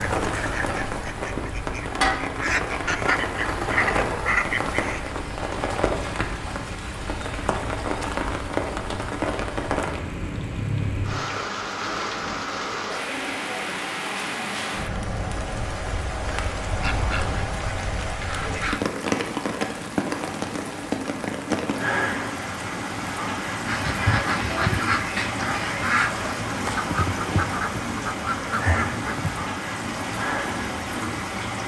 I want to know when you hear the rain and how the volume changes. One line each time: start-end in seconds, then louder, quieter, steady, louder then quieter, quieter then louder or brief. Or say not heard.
0.0-31.6 steady.